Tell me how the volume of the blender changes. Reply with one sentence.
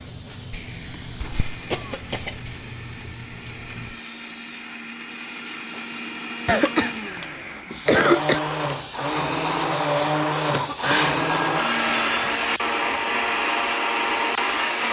The loudness of the blender goes up.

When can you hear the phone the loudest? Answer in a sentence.
The loudest moment of the phone is at 11 seconds.